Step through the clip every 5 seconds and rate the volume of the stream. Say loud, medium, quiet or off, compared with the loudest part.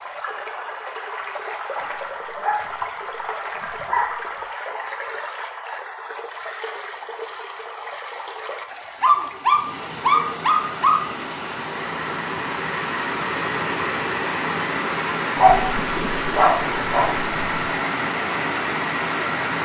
medium, medium, loud, loud.